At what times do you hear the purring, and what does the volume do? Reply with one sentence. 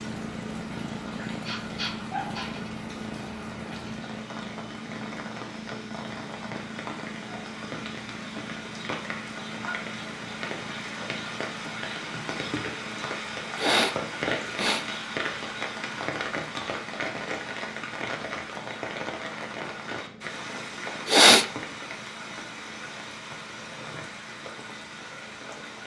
The purring can be heard from 0.0 to 25.8 s, getting quieter.